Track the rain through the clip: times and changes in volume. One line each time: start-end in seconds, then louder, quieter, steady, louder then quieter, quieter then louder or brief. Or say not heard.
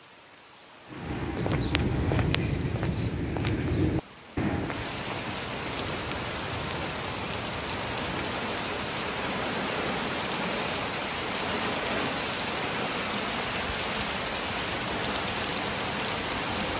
0.0-16.7 louder.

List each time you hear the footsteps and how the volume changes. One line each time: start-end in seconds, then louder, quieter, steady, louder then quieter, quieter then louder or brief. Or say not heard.
0.9-8.3 quieter.